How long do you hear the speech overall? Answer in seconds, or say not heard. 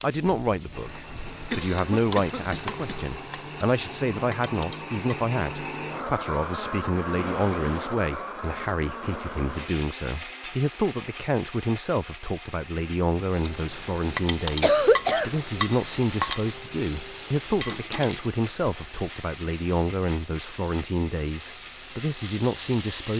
23 s.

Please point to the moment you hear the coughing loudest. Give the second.
15 s.